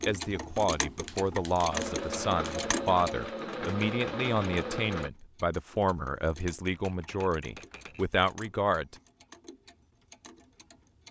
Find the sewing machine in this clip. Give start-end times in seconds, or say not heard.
1.7-5.1.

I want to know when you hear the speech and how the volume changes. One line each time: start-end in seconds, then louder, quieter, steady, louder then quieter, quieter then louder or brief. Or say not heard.
0.0-8.9 steady.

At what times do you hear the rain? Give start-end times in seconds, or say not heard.
not heard.